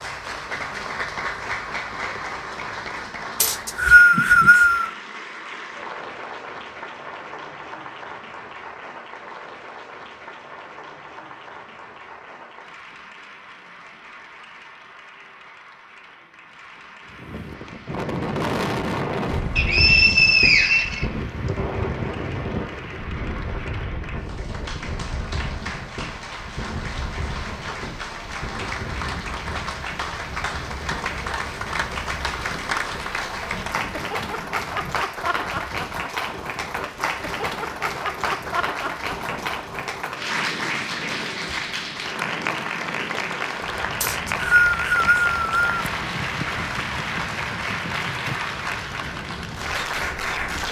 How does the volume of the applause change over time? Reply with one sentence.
The loudness of the applause goes down, then up.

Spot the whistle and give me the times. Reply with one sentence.
The whistle can be heard from 3.4 to 4.9 s, from 19.6 to 21.1 s and from 44.0 to 45.8 s.